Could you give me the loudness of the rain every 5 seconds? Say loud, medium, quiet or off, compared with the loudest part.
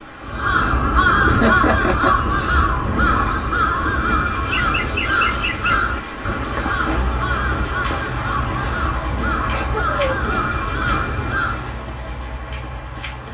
medium, loud, loud.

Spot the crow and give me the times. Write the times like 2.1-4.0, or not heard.
0.2-11.8.